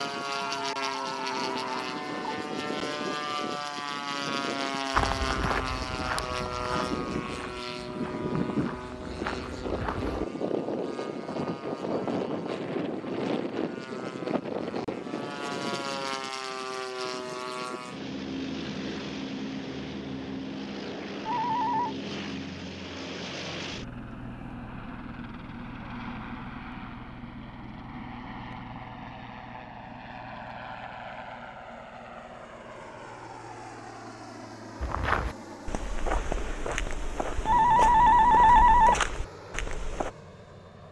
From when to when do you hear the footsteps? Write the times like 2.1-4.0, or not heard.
4.9-10.2, 34.8-40.1.